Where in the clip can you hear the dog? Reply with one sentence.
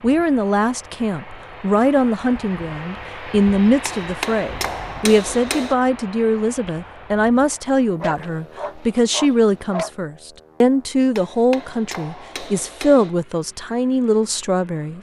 You can hear the dog from 8.0 to 9.9 s.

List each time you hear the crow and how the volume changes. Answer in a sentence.
You can't hear the crow here.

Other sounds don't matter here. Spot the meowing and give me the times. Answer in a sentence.
The meowing can't be heard in this clip.